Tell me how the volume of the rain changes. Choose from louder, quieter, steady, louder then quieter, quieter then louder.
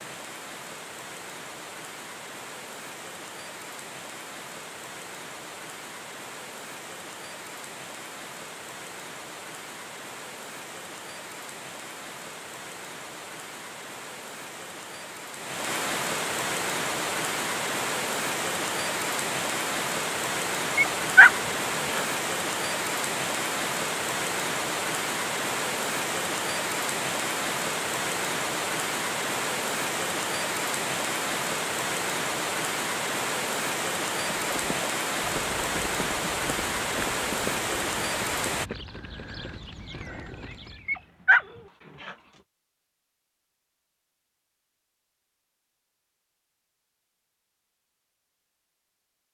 louder.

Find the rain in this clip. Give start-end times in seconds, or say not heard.
0.0-38.7.